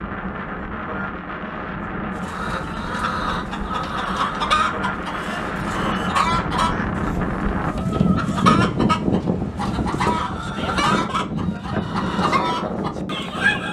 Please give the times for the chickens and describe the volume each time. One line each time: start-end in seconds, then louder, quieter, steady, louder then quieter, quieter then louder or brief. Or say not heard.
2.2-13.6 steady.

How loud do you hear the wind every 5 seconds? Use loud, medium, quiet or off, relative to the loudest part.
medium, loud, loud.